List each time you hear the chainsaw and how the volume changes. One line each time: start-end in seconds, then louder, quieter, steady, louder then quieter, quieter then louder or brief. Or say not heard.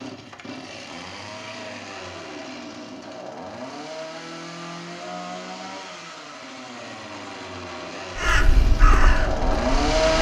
0.0-10.1 louder.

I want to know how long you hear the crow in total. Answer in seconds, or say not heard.
2 s.